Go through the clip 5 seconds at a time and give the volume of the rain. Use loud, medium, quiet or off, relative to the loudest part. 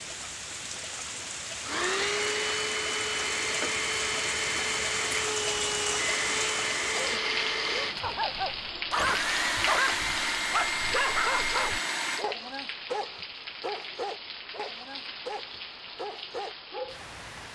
loud, loud, medium, medium.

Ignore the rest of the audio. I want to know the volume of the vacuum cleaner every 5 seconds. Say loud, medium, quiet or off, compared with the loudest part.
loud, loud, loud, off.